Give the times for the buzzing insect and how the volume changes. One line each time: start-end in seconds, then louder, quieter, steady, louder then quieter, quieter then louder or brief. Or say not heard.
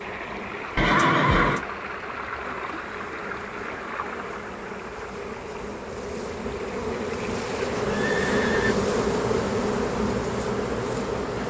0.0-11.4 louder.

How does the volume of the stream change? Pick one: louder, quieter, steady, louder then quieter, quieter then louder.
quieter then louder.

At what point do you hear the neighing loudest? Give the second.
1 s.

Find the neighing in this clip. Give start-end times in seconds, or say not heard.
0.8-1.6, 7.9-8.8.